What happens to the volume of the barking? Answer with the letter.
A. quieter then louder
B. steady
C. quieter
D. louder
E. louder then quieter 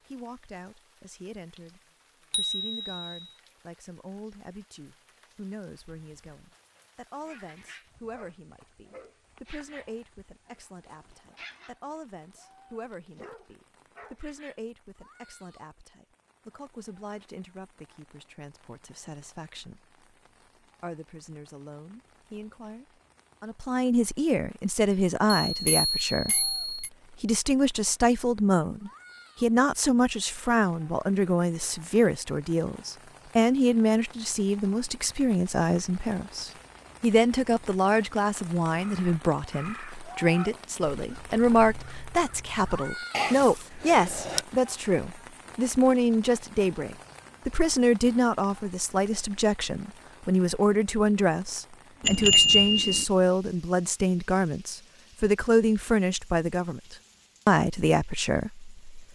A.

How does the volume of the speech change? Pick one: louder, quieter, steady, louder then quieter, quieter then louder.
louder.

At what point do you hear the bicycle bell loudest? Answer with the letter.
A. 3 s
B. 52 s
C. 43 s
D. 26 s
B.